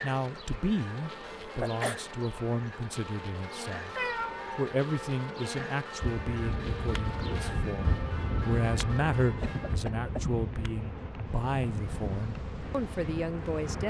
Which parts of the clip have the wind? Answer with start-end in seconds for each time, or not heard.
6.0-13.8.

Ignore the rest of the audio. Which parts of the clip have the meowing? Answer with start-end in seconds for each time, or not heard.
4.0-4.6.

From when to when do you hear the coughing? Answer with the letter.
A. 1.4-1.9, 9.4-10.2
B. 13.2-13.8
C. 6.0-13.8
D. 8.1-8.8
A.